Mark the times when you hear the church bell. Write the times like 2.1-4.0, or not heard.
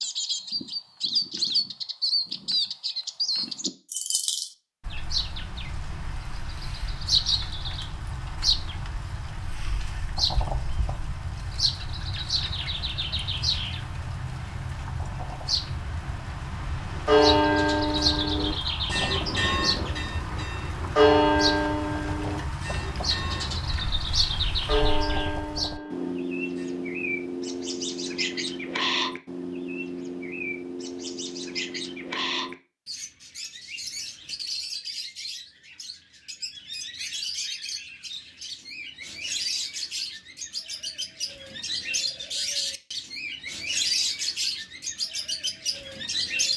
17.1-26.7.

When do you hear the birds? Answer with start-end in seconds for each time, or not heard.
0.0-46.5.